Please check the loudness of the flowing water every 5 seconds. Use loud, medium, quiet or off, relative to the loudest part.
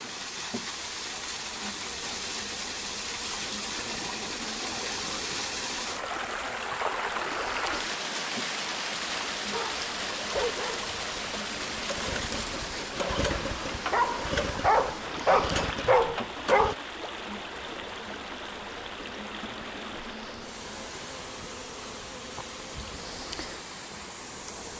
loud, loud, loud, medium, medium.